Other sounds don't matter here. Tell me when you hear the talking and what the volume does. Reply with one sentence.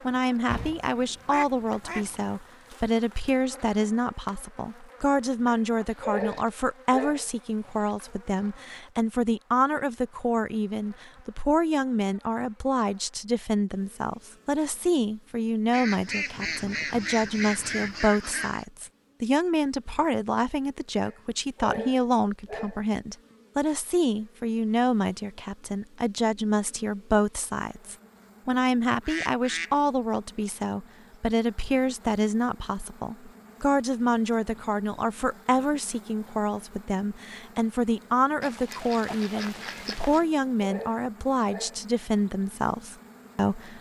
You can hear the talking from 0.0 to 43.7 s, at a steady volume.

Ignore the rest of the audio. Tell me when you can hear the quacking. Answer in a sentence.
You can hear the quacking from 0.5 to 2.4 s, from 15.7 to 18.6 s, from 28.9 to 29.8 s and from 38.4 to 40.2 s.